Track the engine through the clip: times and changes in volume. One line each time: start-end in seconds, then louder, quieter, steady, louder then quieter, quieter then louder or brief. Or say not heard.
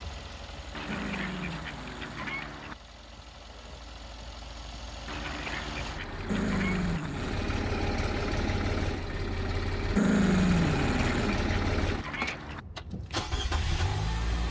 0.0-14.4 louder.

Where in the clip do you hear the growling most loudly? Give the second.
10 s.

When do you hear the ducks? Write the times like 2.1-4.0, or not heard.
0.7-2.8, 5.0-7.1, 10.6-12.7.